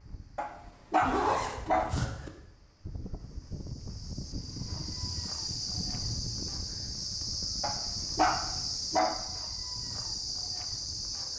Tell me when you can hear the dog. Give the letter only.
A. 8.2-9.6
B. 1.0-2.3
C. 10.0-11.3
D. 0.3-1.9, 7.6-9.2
D.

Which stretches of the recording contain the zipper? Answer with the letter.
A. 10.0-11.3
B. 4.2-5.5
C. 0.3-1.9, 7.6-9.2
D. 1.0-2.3
D.